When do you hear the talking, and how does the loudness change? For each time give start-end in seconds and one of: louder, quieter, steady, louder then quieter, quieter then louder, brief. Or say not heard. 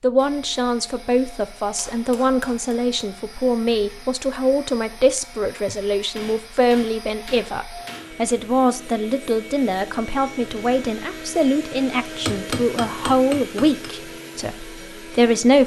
0.0-15.6 steady.